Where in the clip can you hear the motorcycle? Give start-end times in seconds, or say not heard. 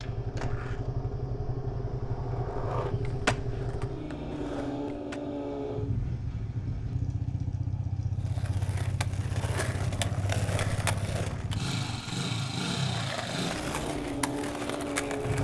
0.0-15.3.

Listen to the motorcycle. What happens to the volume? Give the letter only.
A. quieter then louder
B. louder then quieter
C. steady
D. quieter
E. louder
C.